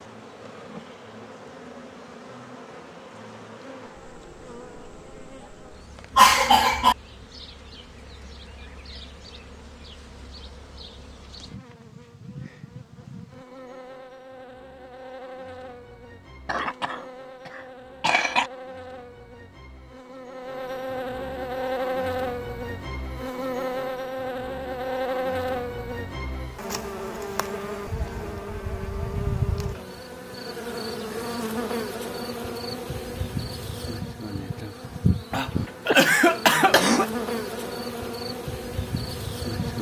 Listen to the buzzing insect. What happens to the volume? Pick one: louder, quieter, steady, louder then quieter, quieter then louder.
louder.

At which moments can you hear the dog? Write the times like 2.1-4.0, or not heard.
not heard.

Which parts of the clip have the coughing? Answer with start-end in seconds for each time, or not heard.
6.2-7.0, 16.4-18.5, 35.3-37.1.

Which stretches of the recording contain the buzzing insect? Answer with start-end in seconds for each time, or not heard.
0.0-39.7.